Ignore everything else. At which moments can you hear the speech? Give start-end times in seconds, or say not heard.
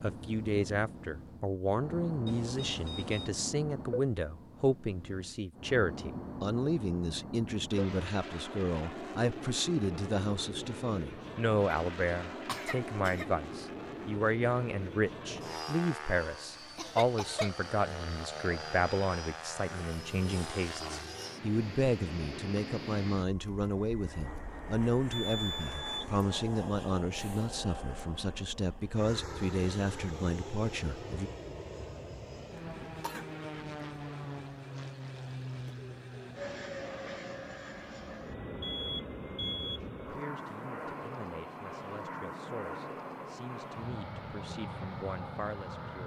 0.0-31.3, 39.3-46.0.